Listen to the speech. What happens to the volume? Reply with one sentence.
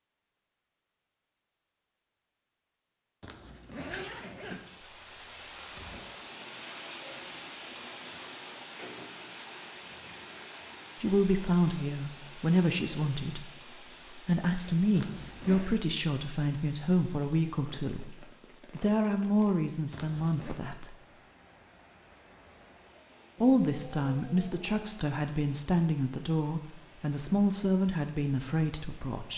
The loudness of the speech stays about the same.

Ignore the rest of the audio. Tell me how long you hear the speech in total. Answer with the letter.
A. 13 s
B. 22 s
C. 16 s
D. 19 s
C.